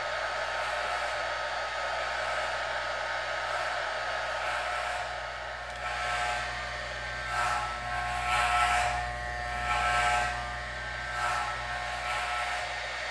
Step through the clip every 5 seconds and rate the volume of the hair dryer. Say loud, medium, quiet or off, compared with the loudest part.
loud, medium, medium.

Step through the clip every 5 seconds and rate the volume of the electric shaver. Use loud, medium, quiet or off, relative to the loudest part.
medium, loud, loud.